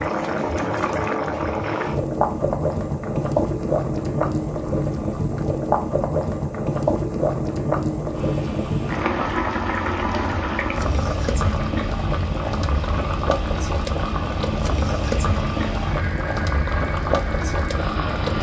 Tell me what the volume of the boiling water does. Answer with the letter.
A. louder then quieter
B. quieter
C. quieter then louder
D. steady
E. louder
D.